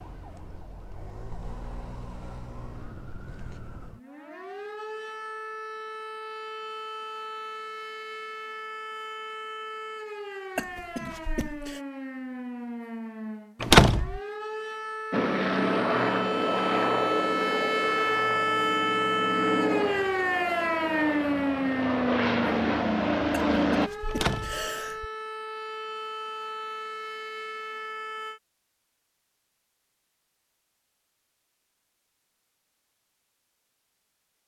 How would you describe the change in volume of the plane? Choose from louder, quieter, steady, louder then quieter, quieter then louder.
quieter then louder.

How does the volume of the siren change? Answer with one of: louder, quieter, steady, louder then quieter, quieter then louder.
louder then quieter.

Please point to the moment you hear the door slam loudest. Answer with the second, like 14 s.
14 s.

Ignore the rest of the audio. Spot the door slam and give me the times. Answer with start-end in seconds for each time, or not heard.
13.6-14.2, 24.1-24.6.